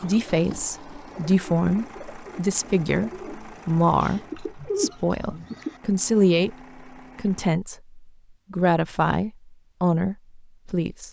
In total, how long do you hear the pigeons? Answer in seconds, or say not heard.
6 s.